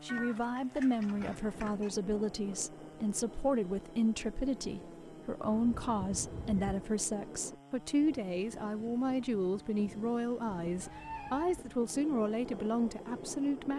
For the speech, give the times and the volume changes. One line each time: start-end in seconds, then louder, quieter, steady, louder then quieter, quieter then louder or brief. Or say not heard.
0.0-13.7 steady.